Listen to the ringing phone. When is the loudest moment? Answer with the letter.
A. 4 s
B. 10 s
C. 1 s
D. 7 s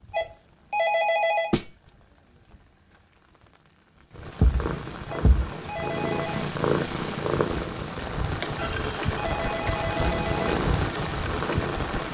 C.